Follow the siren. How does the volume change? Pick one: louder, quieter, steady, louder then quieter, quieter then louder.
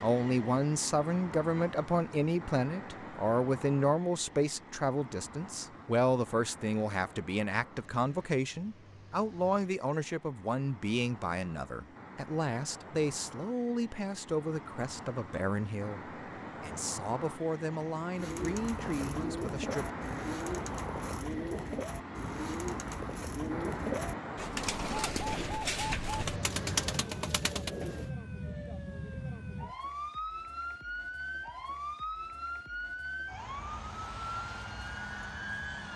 steady.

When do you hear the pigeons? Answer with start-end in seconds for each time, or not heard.
18.1-28.1.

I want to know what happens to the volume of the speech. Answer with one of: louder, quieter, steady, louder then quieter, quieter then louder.
quieter.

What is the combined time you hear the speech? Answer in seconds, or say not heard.
20 s.